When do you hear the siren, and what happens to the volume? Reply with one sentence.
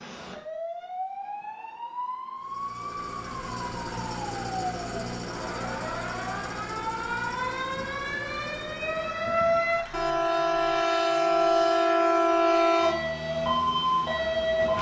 You can hear the siren from 0.0 to 14.7 s, getting louder.